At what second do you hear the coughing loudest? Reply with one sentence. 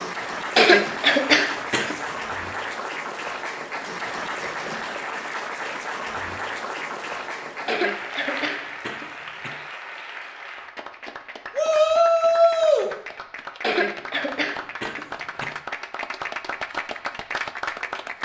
The loudest moment of the coughing is at 1 second.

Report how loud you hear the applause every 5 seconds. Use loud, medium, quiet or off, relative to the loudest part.
loud, loud, medium, loud.